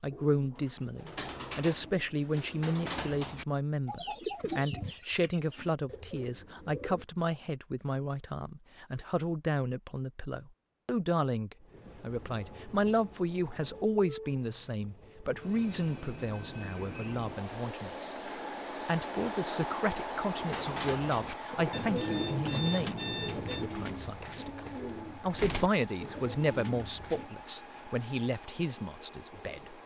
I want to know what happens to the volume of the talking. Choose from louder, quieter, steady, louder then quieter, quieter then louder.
steady.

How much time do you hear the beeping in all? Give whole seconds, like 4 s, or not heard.
2 s.